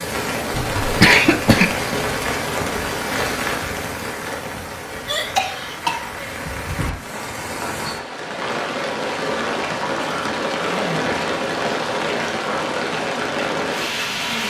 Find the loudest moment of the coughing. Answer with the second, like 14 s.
1 s.